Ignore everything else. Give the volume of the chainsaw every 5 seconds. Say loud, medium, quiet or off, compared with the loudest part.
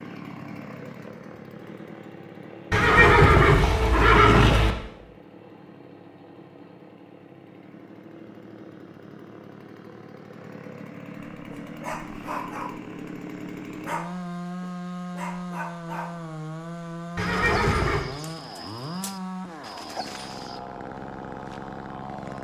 medium, medium, loud, loud, loud.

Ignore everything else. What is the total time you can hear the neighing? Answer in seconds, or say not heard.
3 s.